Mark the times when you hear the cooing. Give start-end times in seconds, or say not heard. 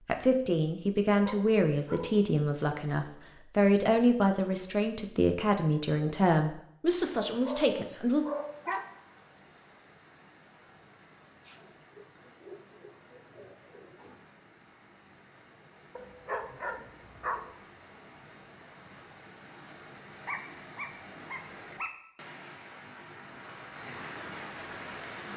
11.4-14.2.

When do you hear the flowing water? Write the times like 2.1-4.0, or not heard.
6.9-25.3.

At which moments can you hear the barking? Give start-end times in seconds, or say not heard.
1.2-3.1, 7.2-8.8, 15.9-17.4, 20.2-21.9.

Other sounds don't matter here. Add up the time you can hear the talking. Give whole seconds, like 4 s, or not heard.
8 s.